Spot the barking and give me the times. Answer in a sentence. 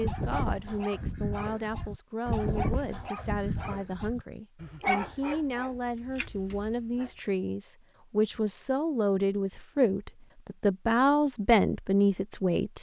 The barking can be heard from 0.0 to 7.1 s.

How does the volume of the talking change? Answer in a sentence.
The loudness of the talking goes up.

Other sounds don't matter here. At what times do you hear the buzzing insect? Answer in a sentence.
You can't hear the buzzing insect here.